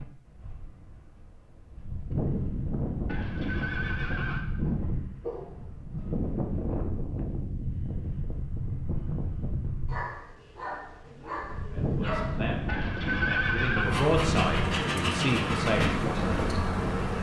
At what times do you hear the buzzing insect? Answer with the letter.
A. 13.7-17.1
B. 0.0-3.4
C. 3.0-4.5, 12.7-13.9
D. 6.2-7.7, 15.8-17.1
A.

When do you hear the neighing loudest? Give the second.
13 s.